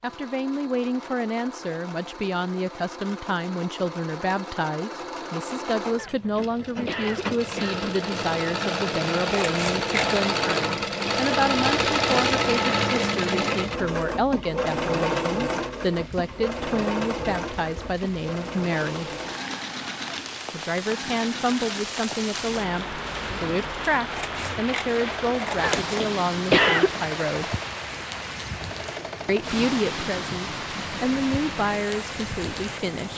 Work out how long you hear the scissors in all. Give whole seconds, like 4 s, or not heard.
3 s.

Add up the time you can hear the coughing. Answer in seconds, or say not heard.
3 s.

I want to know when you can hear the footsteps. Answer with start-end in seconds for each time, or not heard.
not heard.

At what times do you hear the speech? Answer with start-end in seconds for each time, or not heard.
0.0-19.1, 20.5-27.6, 29.2-33.1.